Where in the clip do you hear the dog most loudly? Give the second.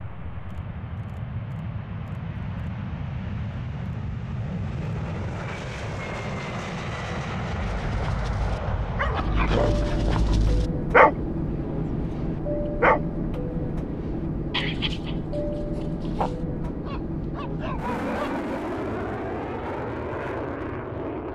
11 s.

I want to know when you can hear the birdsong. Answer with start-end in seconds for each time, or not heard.
not heard.